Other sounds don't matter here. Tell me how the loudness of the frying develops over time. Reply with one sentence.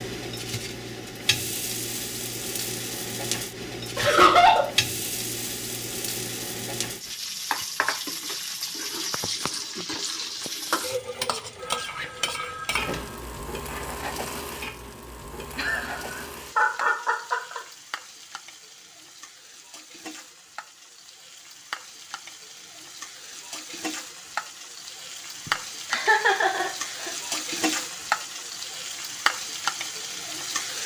The volume of the frying goes down, then up.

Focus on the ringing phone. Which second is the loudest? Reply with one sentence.
The volume of the ringing phone peaks at 13 seconds.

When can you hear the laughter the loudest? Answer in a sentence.
The volume of the laughter peaks at 4 seconds.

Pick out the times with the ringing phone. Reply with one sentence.
You can hear the ringing phone from 11.6 to 13.2 s.